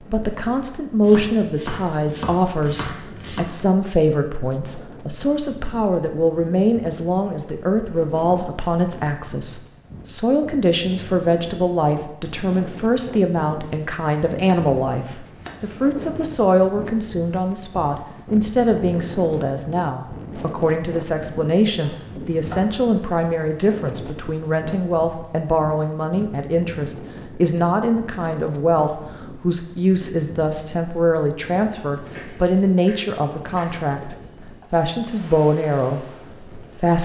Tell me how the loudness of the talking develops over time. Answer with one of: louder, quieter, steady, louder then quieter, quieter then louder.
steady.